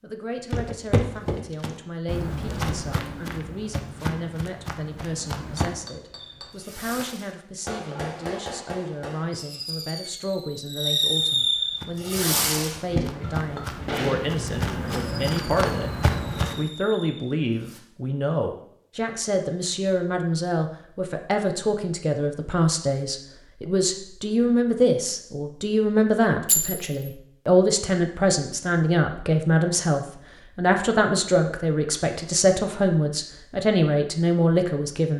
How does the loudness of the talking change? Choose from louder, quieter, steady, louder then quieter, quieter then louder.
louder.